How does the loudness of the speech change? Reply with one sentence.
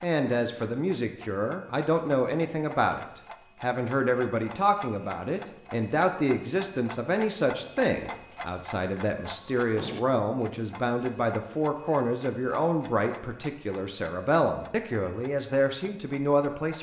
The volume of the speech stays about the same.